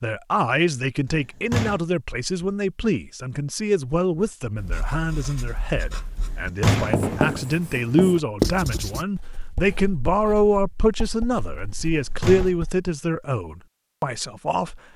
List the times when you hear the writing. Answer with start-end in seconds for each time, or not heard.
4.5-12.9.